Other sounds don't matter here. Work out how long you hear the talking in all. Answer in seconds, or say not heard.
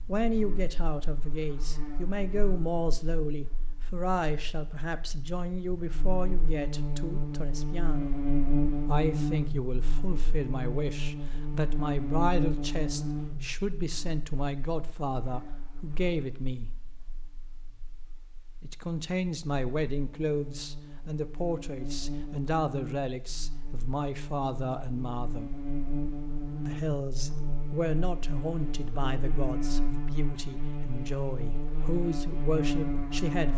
30 s.